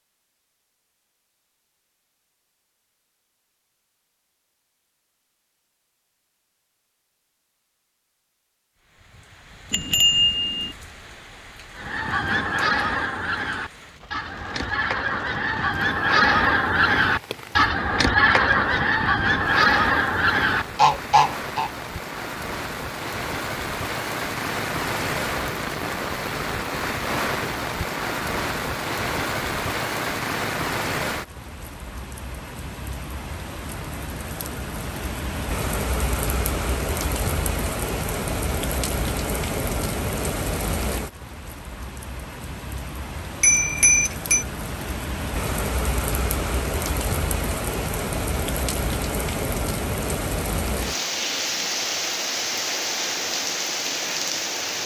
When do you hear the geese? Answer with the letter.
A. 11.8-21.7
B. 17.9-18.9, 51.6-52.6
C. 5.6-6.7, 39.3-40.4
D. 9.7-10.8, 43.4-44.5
A.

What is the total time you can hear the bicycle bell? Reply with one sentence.
The bicycle bell can be heard for 2 seconds in total.